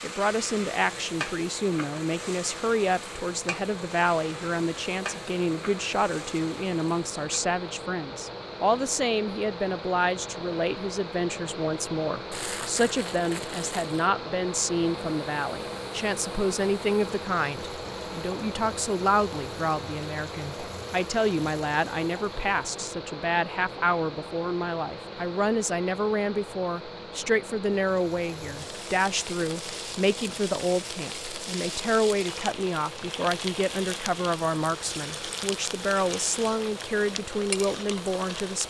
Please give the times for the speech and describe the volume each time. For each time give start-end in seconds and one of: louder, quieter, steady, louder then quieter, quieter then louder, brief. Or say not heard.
0.0-38.6 steady.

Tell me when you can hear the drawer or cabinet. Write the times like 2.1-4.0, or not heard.
not heard.